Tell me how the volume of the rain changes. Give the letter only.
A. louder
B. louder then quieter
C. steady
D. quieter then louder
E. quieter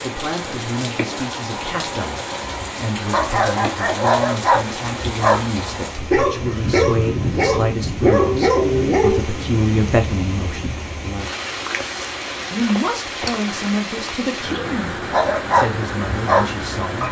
C.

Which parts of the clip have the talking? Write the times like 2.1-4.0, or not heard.
0.0-10.8, 12.5-17.0.